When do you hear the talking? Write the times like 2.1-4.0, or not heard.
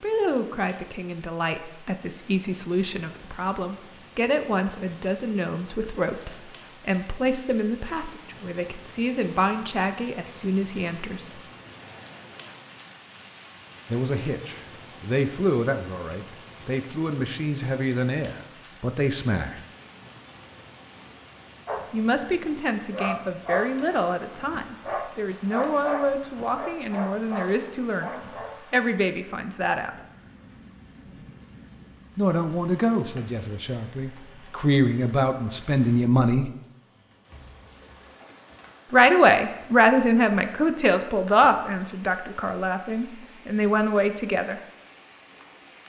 0.0-11.4, 13.9-19.6, 21.9-29.9, 32.1-36.5, 38.9-44.6.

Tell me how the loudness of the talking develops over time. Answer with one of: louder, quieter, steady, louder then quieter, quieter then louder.
louder.